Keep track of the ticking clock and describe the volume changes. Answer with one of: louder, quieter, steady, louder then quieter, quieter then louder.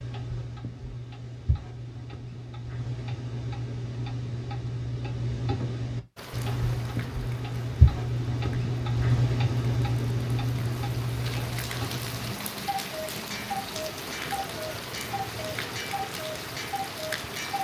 louder then quieter.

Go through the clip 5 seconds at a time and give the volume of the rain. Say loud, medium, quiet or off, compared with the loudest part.
off, medium, loud, loud.